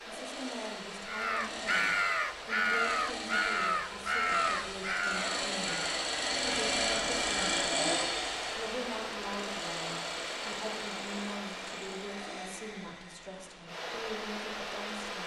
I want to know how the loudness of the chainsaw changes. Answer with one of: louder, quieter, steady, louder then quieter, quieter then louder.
louder then quieter.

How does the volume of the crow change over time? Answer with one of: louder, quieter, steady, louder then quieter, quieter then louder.
quieter.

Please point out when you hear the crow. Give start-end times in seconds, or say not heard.
1.1-7.4.